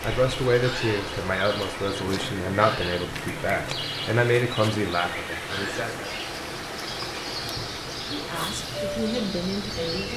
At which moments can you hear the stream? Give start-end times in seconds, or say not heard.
0.0-10.1.